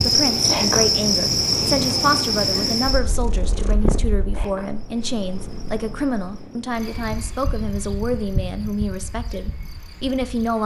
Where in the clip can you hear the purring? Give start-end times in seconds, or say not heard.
0.0-7.3.